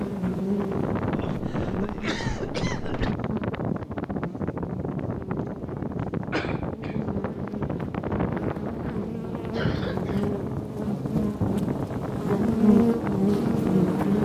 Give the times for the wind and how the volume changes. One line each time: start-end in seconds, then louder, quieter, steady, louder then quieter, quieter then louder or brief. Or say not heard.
0.0-14.2 steady.